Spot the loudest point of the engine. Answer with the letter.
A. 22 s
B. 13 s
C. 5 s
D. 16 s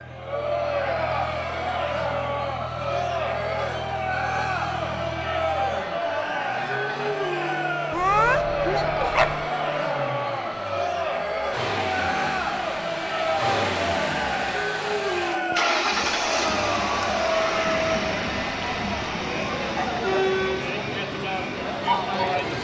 D.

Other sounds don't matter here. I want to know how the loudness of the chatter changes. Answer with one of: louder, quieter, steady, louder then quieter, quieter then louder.
steady.